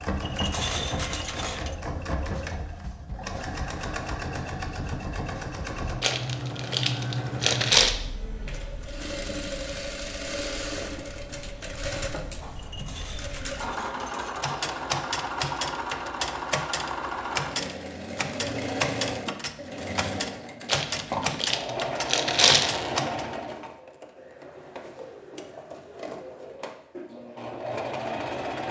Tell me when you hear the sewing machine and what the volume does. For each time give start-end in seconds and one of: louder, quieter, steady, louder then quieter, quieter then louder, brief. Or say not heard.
0.0-28.6 steady.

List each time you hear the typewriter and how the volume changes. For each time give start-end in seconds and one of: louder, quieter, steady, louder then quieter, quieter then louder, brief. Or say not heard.
14.4-23.2 steady.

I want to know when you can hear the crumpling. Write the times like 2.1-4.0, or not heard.
6.0-8.0, 20.6-22.7.